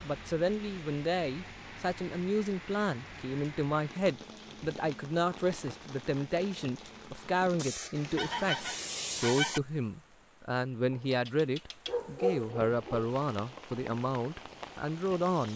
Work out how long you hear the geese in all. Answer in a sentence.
You can hear the geese for 2 seconds altogether.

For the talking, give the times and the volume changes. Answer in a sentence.
You can hear the talking from 0.0 to 15.5 s, at a steady volume.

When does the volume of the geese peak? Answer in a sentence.
The volume of the geese peaks at 9 seconds.